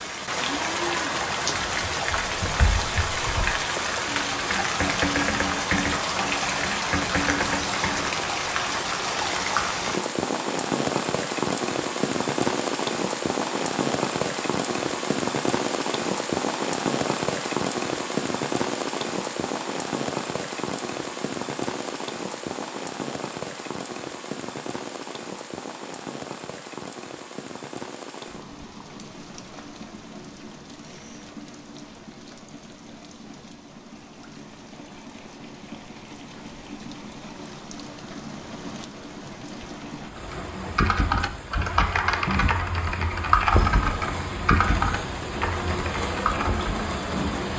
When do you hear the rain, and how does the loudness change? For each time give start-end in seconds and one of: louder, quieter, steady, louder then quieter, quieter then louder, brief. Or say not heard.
0.0-47.5 quieter then louder.